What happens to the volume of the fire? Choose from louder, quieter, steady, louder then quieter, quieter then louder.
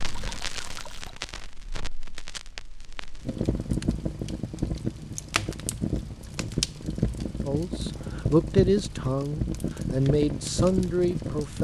louder.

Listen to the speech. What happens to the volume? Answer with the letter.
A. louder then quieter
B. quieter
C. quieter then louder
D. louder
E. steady
C.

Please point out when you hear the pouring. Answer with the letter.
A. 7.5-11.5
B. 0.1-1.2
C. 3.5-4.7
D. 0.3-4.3
B.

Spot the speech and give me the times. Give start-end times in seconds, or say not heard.
7.5-11.5.